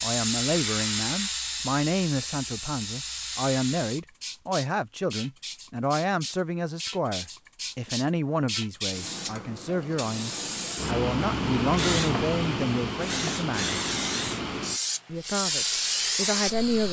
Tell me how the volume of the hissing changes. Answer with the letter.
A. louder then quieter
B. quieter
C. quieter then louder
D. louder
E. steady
C.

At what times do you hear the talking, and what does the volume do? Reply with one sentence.
You can hear the talking from 0.0 to 13.8 s, at a steady volume; and briefly from 15.1 to 16.8 s.